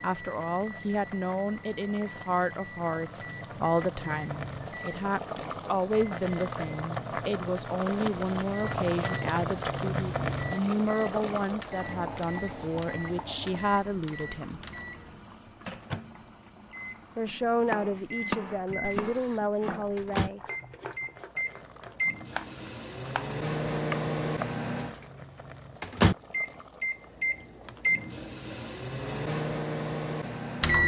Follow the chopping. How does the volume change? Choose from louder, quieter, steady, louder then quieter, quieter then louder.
quieter then louder.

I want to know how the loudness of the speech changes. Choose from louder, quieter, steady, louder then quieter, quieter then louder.
steady.